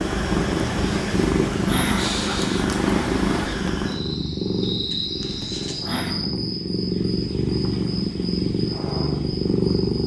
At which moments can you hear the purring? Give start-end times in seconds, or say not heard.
0.0-10.0.